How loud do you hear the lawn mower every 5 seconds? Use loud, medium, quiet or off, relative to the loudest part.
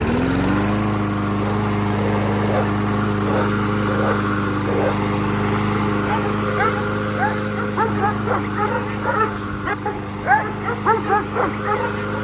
loud, loud, medium.